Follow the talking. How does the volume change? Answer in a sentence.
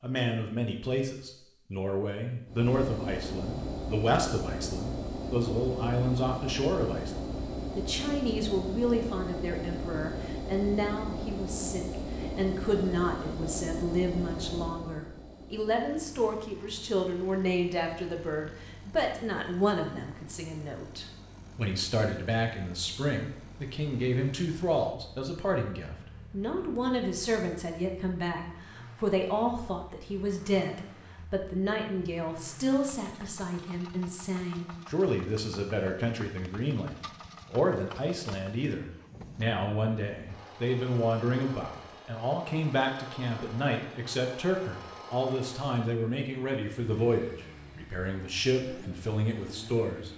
The volume of the talking stays about the same.